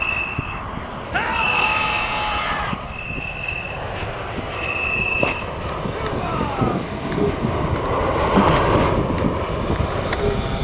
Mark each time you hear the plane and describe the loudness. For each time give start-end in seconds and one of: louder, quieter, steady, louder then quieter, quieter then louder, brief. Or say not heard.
0.0-10.5 louder.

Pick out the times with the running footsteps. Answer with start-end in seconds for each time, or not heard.
not heard.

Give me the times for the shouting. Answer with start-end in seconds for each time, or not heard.
1.1-2.8, 5.9-6.8.